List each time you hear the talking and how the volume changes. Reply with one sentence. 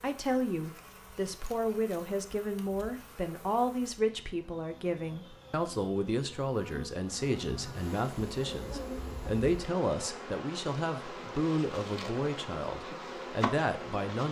The talking can be heard from 0.0 to 14.2 s, at a steady volume.